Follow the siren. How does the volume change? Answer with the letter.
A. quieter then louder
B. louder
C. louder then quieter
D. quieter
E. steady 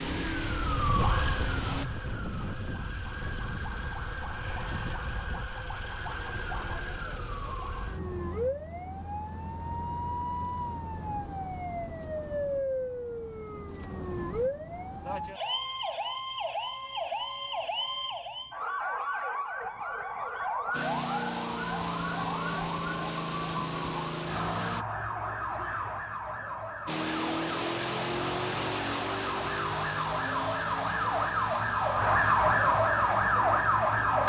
B.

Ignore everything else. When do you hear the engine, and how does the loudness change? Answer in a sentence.
You can hear the engine briefly from 0.0 to 1.9 s; from 20.7 to 24.9 s, at a steady volume; and from 26.9 to 34.2 s, getting quieter.